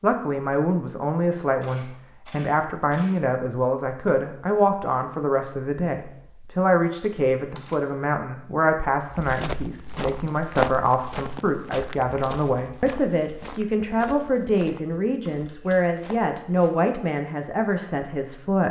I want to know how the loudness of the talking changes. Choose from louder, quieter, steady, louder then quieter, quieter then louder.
steady.